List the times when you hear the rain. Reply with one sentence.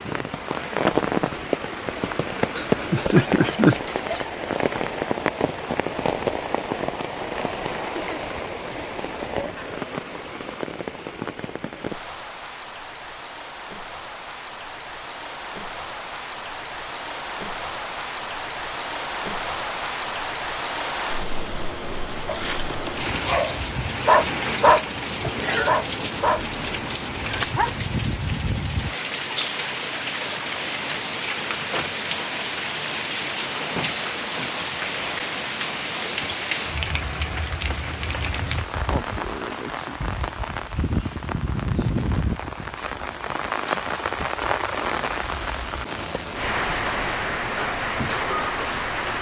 The rain can be heard from 0.0 to 49.1 s.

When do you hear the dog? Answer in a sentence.
The dog can be heard from 22.2 to 24.9 s, from 25.6 to 26.4 s and from 27.2 to 27.7 s.